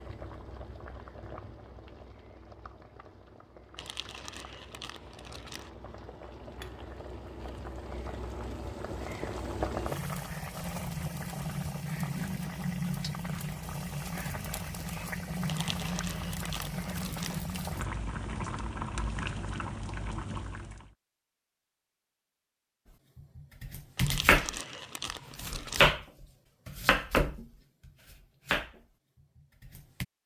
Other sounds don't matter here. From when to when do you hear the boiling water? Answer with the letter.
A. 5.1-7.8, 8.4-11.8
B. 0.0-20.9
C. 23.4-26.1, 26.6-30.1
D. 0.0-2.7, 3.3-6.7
B.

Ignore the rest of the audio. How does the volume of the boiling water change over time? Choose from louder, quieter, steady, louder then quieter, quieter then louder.
louder.